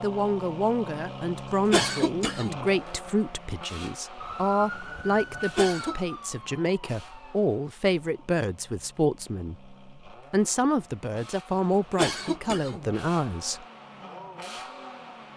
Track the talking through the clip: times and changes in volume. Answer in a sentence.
The talking can be heard from 0.0 to 13.7 s, at a steady volume.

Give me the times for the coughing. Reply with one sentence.
You can hear the coughing from 1.7 to 2.7 s, from 5.5 to 6.0 s and from 11.9 to 12.9 s.